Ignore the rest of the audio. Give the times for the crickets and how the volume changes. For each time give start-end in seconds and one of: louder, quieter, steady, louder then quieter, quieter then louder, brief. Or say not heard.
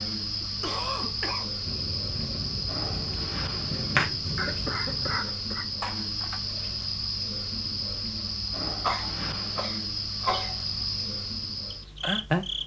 0.0-12.6 steady.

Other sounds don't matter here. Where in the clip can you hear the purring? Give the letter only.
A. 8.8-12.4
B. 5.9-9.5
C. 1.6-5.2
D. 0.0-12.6
C.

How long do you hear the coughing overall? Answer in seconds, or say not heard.
5 s.